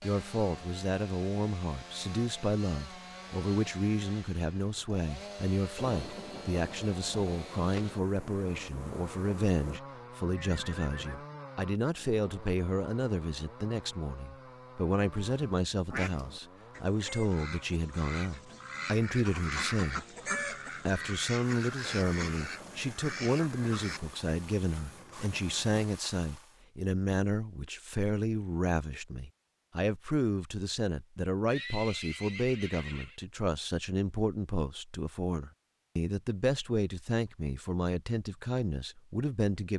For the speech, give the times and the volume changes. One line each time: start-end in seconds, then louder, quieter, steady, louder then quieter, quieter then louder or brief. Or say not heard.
0.0-20.1 steady
20.9-39.7 steady.